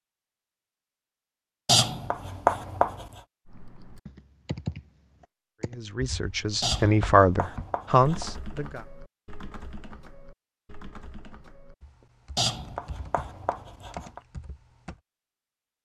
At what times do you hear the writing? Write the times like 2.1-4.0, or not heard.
1.6-3.1, 6.6-8.3, 12.3-14.2.